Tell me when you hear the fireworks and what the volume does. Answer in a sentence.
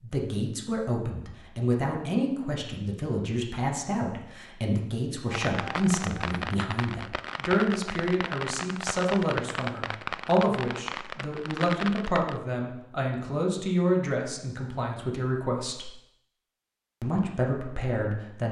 The fireworks can be heard from 5.3 to 12.4 s, at a steady volume.